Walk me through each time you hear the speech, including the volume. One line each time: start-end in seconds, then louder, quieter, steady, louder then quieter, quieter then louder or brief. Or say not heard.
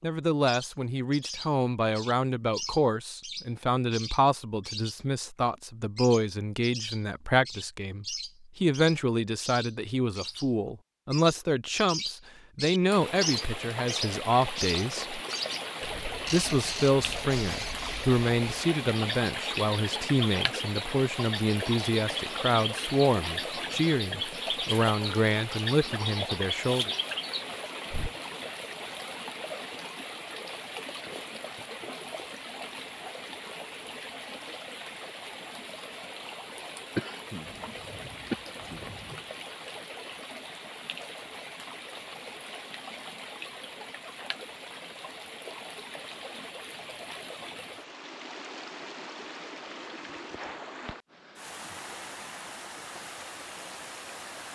0.0-15.2 steady
16.3-26.9 steady.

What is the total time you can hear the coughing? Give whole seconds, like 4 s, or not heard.
2 s.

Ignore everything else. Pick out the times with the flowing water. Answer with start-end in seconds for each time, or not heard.
12.9-54.4.